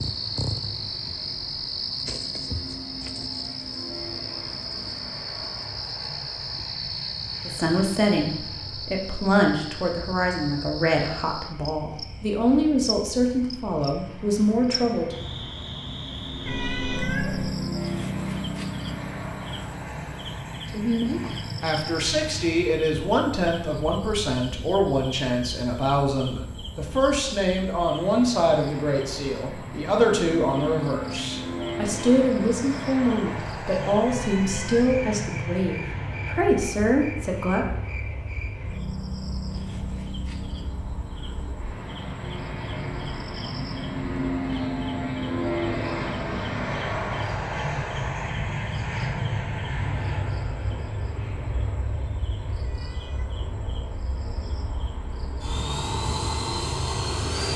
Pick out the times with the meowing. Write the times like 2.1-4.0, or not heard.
16.4-17.6, 34.0-35.0, 52.6-53.3.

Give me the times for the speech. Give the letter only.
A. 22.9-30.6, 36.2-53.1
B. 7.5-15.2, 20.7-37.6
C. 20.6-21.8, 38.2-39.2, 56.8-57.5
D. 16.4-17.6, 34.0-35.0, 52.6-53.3
B.